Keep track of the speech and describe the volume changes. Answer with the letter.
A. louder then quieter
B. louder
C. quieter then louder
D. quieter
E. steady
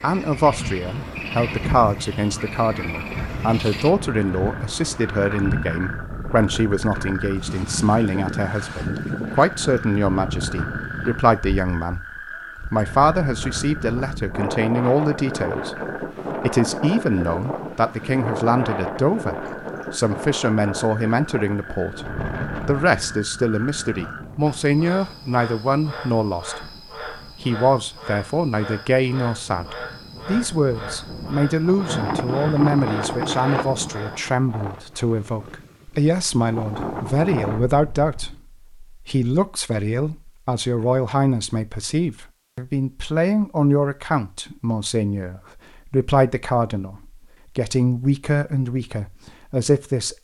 E.